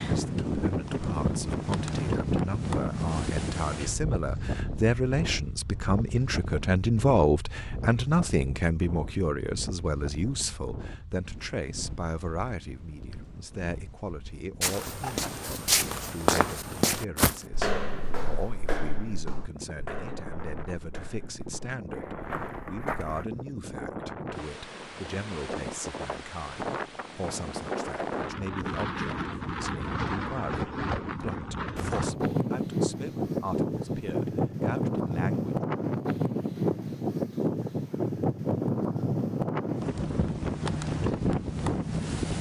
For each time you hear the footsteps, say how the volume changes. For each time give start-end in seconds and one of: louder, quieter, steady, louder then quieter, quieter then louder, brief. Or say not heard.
14.6-23.2 quieter.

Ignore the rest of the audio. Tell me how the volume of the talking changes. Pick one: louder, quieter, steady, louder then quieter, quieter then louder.
quieter.